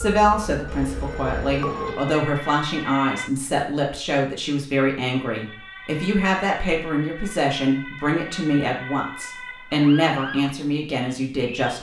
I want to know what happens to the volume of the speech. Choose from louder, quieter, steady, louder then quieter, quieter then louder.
steady.